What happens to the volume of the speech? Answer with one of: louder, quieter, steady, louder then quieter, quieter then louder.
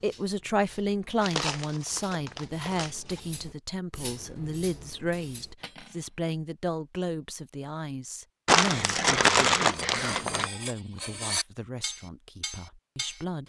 quieter.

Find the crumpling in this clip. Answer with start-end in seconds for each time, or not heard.
1.2-3.2, 8.4-10.5.